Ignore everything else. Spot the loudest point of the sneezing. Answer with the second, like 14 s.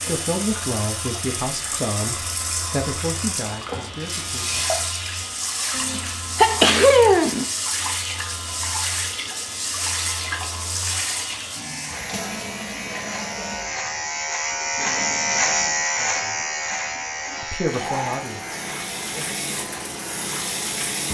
7 s.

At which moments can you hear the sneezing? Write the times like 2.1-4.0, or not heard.
5.8-7.5.